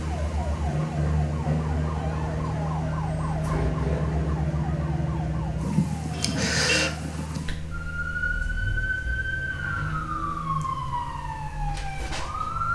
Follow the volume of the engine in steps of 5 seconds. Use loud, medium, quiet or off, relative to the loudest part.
loud, medium, quiet.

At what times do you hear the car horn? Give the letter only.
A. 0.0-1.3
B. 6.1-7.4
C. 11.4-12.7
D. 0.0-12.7
B.